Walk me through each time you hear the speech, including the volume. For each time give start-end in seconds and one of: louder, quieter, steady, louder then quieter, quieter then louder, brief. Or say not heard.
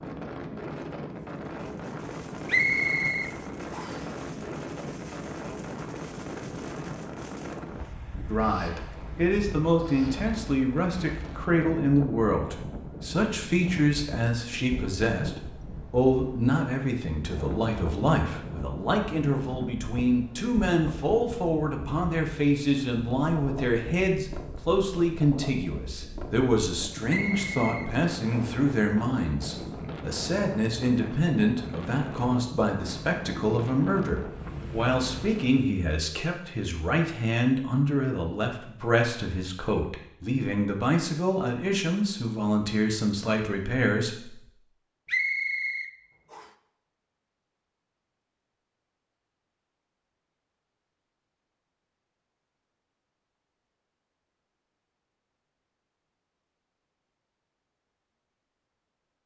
8.2-44.4 steady.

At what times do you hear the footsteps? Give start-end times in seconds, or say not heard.
not heard.